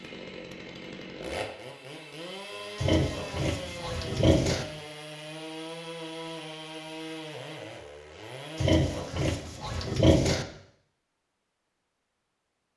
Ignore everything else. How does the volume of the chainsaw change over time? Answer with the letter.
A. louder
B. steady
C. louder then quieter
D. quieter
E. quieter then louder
B.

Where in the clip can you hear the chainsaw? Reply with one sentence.
You can hear the chainsaw from 0.0 to 9.1 s.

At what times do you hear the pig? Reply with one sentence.
The pig can be heard from 2.8 to 4.7 s and from 8.6 to 10.4 s.